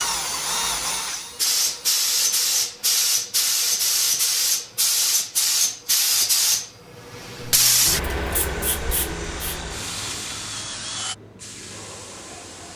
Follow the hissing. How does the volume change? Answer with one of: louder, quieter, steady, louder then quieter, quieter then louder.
quieter.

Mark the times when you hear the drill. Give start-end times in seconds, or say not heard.
0.0-2.5, 8.3-11.2.